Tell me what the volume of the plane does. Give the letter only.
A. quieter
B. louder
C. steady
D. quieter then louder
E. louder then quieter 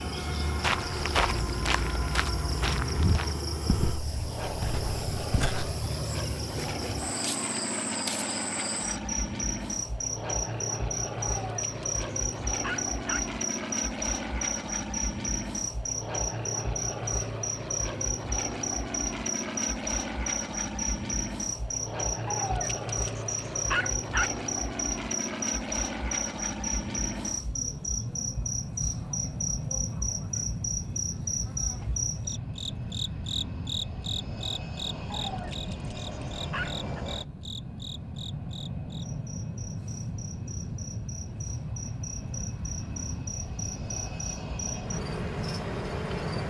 C.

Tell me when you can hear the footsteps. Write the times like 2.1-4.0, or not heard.
0.6-5.8.